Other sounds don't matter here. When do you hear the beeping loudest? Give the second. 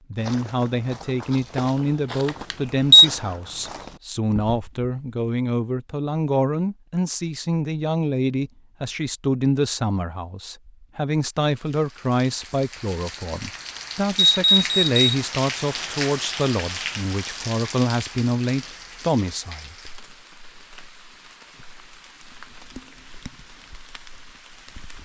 3 s.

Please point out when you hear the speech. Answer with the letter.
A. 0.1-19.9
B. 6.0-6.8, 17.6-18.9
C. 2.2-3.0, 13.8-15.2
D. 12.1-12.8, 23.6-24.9
A.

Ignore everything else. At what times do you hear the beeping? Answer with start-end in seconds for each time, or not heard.
2.2-3.0, 13.8-15.2.